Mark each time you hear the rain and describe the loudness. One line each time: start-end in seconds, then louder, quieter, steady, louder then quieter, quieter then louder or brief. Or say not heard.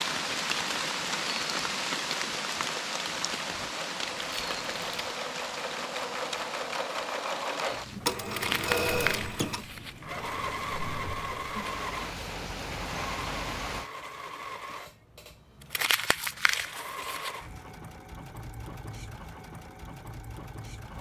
0.0-13.9 quieter then louder.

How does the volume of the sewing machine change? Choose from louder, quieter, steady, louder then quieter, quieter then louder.
louder then quieter.